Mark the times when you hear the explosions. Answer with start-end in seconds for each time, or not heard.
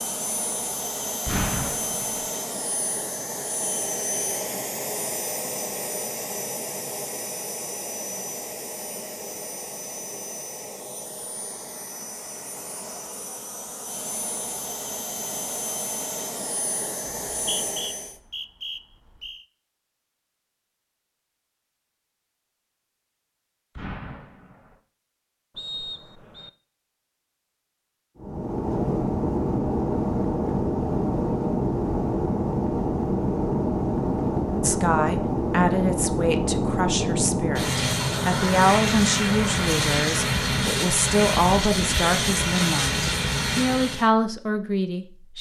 1.2-2.2, 23.8-24.8.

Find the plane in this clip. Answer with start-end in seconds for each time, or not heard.
0.0-18.2, 28.1-44.1.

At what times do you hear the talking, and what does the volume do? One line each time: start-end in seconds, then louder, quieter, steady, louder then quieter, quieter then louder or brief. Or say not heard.
34.6-45.3 steady.